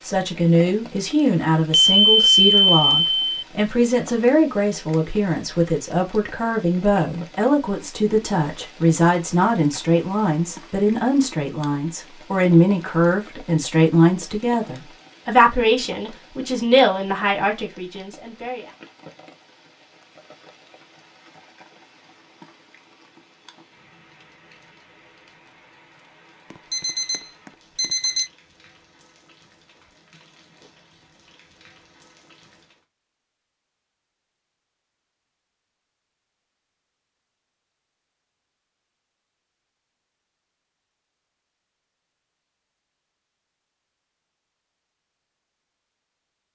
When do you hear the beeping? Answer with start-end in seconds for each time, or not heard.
1.7-3.4, 26.5-28.3.